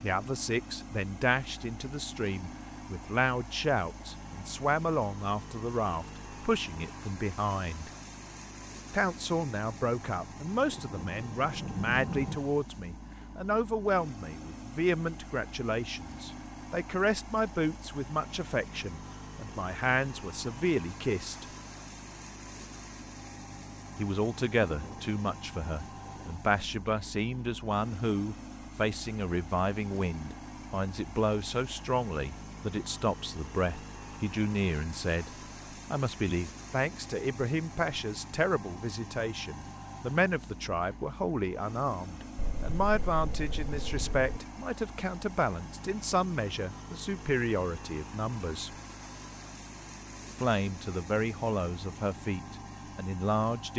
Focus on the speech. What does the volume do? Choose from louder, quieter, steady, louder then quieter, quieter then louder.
steady.